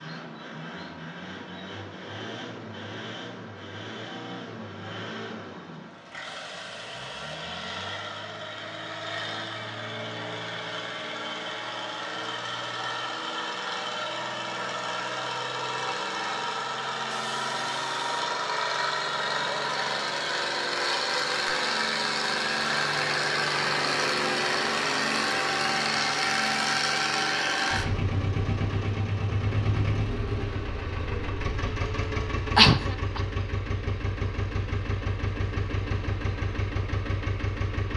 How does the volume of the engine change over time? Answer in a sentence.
The loudness of the engine goes up, then down.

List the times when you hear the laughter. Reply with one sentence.
The laughter can be heard from 32.5 to 33.2 s.